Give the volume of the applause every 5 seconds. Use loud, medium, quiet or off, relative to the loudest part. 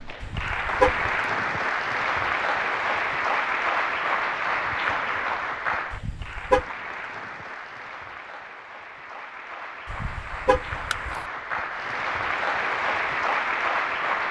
loud, medium, loud.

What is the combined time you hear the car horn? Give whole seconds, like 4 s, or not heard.
3 s.